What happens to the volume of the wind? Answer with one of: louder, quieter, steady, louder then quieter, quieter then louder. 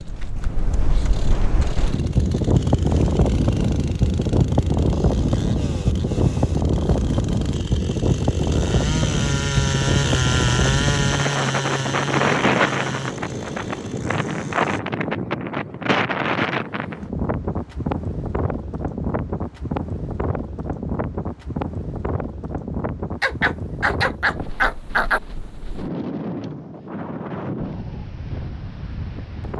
quieter.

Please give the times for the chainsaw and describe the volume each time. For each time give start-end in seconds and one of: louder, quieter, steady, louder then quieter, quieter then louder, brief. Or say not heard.
0.0-14.8 louder then quieter.